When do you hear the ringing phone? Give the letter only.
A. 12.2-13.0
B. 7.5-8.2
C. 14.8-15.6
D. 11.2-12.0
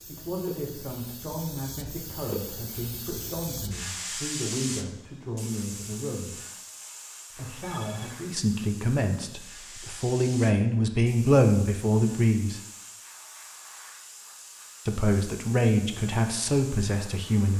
B.